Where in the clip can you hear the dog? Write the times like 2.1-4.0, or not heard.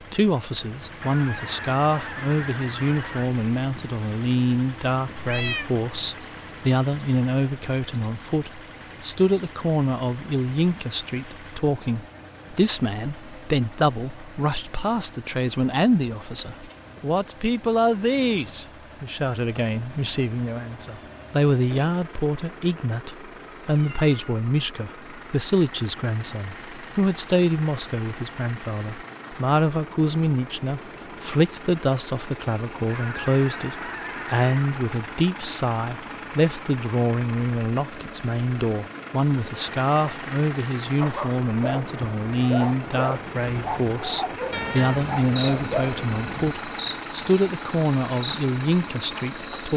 41.0-46.0.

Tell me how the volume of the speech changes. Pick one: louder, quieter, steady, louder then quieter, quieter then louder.
steady.